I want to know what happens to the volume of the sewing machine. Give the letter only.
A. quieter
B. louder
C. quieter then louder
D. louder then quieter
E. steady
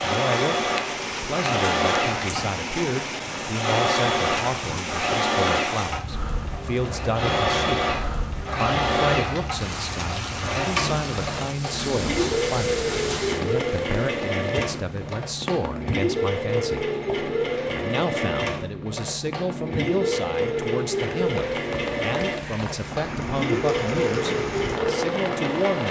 E.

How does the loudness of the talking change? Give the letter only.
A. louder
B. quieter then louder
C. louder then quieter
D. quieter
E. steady
E.